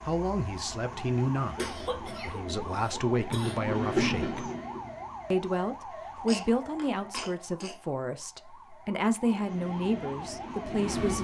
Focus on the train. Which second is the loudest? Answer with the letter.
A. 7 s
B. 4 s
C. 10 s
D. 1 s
B.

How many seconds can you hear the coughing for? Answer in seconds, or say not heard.
4 s.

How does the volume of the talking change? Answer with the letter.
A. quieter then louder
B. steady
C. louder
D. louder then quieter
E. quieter
B.